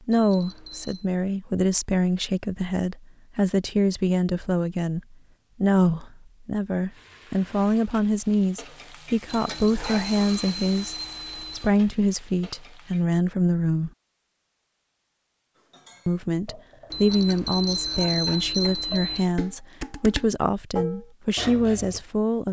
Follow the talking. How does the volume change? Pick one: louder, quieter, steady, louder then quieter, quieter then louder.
steady.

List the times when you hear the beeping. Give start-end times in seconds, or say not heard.
0.1-1.1, 9.2-11.7, 16.9-19.3.